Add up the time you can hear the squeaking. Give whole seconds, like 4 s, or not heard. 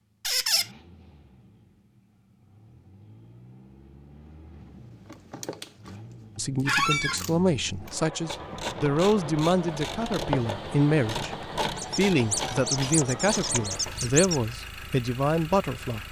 4 s.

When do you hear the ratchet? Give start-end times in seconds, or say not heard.
4.7-14.1.